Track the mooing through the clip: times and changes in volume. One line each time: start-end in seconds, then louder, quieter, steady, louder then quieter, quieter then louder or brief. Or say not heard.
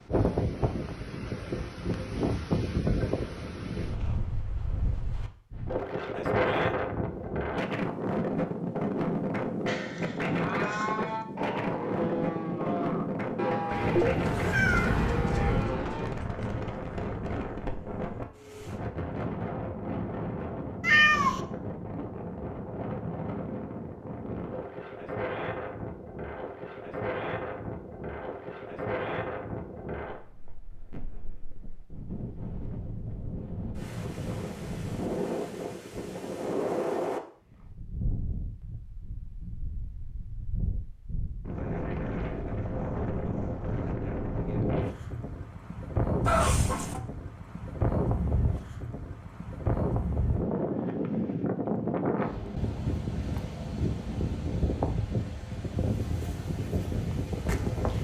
9.7-16.1 steady.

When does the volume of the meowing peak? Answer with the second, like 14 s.
21 s.